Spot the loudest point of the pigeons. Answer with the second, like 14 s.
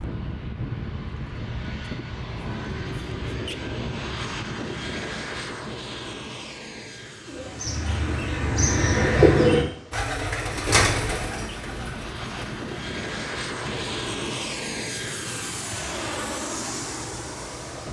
9 s.